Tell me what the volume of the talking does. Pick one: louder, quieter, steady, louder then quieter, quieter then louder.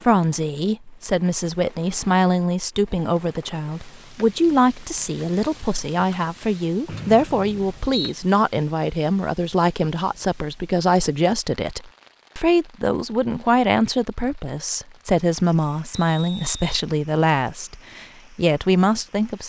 steady.